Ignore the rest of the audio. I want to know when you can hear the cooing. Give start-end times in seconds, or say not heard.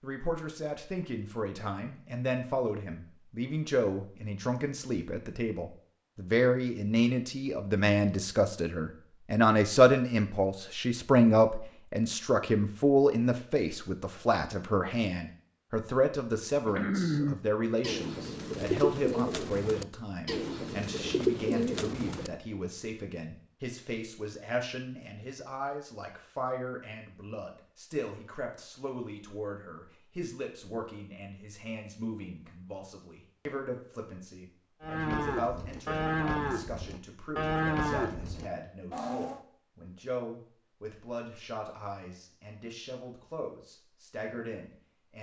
16.6-22.3.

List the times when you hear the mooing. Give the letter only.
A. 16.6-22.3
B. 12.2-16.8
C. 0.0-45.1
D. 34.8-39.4
D.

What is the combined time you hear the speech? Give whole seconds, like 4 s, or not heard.
45 s.